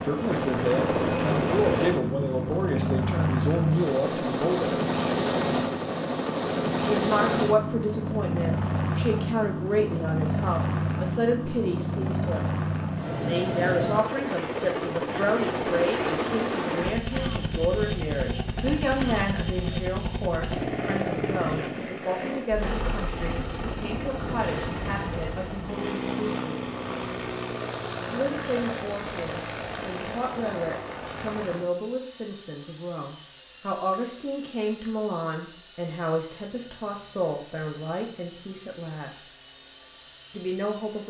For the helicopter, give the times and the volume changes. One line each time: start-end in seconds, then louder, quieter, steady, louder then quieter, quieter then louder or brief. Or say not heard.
0.0-41.0 quieter.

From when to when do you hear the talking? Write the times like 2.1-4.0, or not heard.
0.1-4.7, 6.8-12.5, 13.2-26.6, 28.1-39.2, 40.3-41.0.